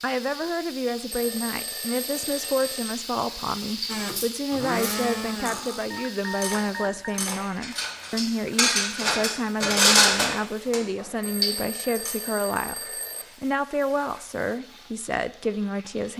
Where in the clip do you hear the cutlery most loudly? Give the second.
10 s.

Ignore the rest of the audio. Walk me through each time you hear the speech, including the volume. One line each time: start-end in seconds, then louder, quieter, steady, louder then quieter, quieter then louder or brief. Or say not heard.
0.0-16.1 steady.